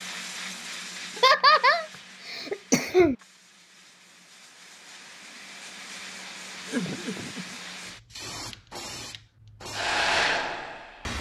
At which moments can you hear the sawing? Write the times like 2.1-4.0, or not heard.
not heard.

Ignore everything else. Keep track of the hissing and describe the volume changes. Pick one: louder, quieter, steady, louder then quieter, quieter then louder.
quieter then louder.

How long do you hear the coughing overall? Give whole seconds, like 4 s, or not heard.
3 s.